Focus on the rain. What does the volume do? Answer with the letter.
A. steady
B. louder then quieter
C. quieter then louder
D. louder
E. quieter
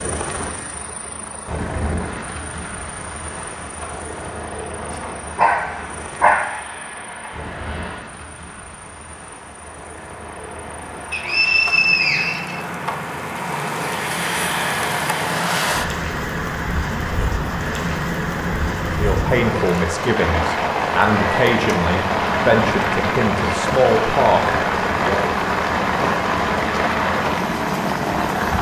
D.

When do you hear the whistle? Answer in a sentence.
You can hear the whistle from 11.1 to 12.7 s.